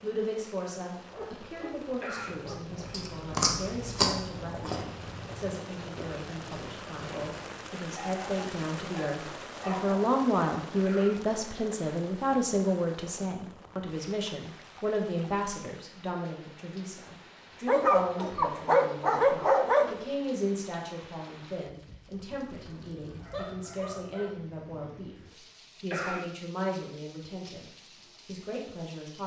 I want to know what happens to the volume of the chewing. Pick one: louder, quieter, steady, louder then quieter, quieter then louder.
quieter.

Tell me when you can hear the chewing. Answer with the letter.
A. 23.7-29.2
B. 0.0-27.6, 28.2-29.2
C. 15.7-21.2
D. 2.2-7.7
D.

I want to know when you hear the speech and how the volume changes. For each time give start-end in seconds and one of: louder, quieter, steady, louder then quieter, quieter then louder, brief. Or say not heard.
0.0-27.6 louder then quieter
28.2-29.2 brief.